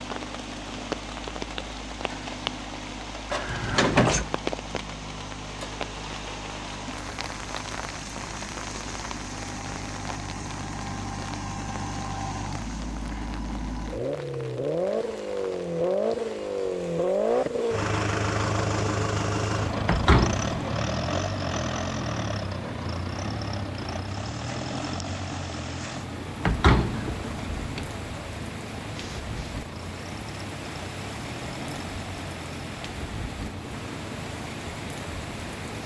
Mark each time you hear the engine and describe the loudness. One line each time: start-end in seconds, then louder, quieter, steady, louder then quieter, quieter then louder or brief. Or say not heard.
0.0-35.8 louder then quieter.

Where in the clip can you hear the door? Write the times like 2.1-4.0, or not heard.
3.3-4.2, 19.9-20.6, 26.4-27.9.